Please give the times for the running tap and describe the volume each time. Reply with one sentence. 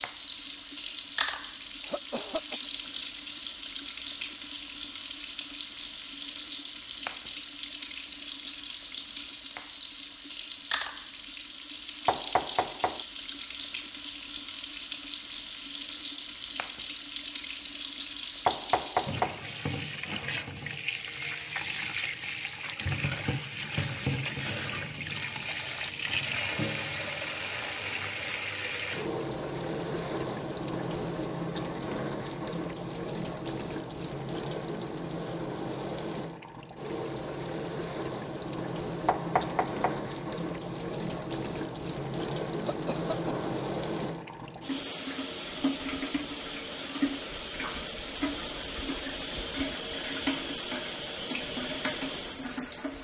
You can hear the running tap from 0.0 to 53.0 s, at a steady volume.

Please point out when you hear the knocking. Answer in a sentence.
You can hear the knocking from 12.1 to 13.1 s, from 18.4 to 19.4 s and from 39.0 to 40.0 s.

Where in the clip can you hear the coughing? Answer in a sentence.
You can hear the coughing from 1.8 to 2.6 s and from 42.5 to 43.4 s.